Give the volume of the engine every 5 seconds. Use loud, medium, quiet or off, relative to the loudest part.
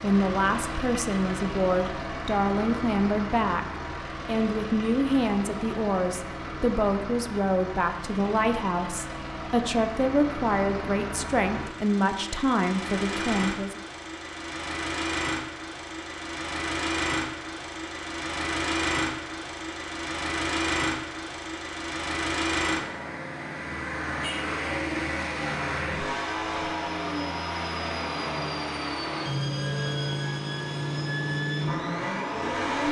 medium, medium, medium, loud, loud, loud, loud.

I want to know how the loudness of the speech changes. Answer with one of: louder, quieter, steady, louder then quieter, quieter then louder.
steady.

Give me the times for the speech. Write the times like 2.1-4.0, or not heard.
0.0-13.8.